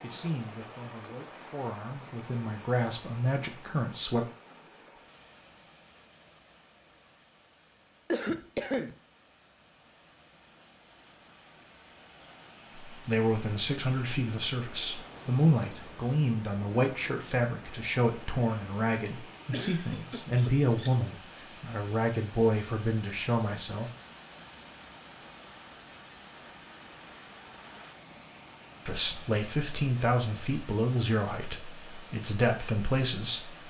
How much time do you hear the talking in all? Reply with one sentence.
The talking can be heard for 20 seconds in total.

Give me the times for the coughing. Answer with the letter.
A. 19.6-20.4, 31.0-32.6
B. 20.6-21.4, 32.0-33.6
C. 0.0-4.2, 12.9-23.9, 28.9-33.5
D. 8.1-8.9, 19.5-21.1
D.